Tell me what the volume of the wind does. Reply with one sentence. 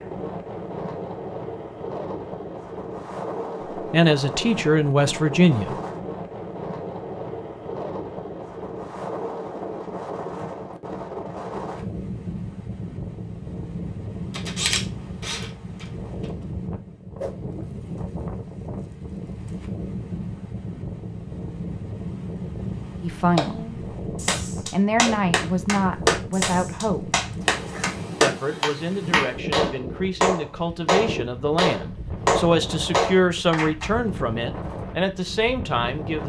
The loudness of the wind stays about the same.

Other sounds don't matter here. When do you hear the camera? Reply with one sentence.
You can hear the camera from 14.3 to 16.2 s.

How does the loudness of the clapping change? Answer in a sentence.
The volume of the clapping goes up.